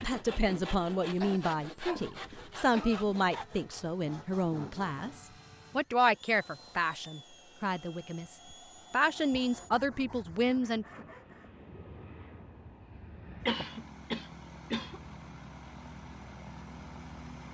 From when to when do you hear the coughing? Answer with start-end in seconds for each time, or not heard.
1.2-3.1, 13.4-15.0.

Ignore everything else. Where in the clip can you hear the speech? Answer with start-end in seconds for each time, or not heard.
0.0-10.8.